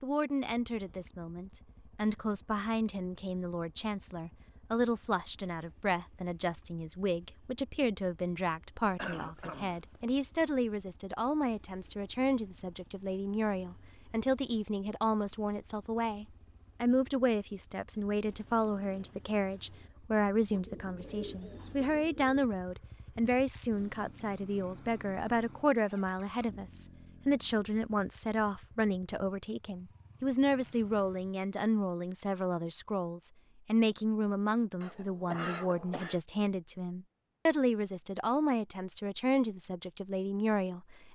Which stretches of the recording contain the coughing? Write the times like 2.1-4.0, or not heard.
8.8-10.4, 34.8-36.2.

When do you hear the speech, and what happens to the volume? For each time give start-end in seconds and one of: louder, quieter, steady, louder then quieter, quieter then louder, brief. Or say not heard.
0.0-41.0 steady.